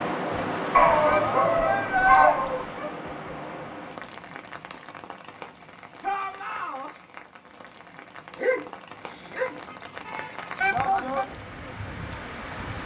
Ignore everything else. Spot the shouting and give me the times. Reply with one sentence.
The shouting can be heard from 1.1 to 2.4 s, from 6.0 to 6.9 s and from 10.6 to 11.2 s.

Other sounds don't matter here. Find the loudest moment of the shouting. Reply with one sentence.
The volume of the shouting peaks at 2 seconds.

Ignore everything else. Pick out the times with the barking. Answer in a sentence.
You can hear the barking from 0.7 to 2.9 s and from 8.3 to 9.6 s.